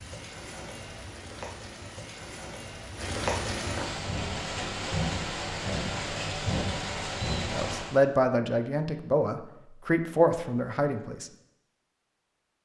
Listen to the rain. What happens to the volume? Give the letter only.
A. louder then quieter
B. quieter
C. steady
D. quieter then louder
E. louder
E.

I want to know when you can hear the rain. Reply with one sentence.
You can hear the rain from 0.0 to 8.0 s.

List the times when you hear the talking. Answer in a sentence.
You can hear the talking from 7.5 to 11.3 s.